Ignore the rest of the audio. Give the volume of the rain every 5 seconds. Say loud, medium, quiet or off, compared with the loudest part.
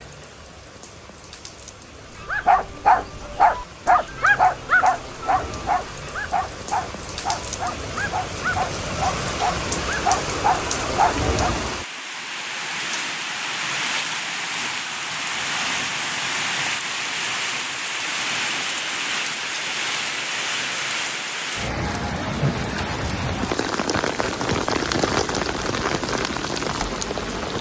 quiet, medium, loud, loud, loud, loud.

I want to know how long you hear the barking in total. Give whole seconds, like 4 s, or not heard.
9 s.